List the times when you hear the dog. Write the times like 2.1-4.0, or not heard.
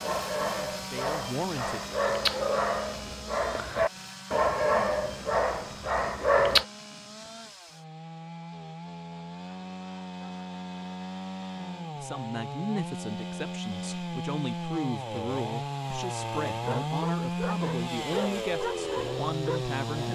0.0-6.7, 16.6-20.1.